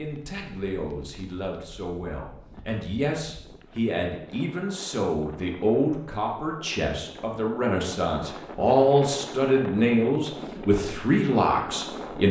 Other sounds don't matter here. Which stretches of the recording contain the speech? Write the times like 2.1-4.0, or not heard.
0.0-12.2.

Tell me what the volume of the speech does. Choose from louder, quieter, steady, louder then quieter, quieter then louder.
louder.